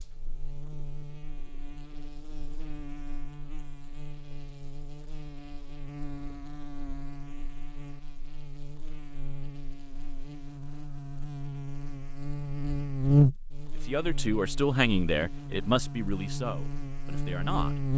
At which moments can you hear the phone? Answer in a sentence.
You can't hear the phone here.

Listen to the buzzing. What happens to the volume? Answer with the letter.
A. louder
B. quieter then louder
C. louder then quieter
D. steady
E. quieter
C.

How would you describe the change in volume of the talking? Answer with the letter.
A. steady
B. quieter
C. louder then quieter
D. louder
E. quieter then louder
B.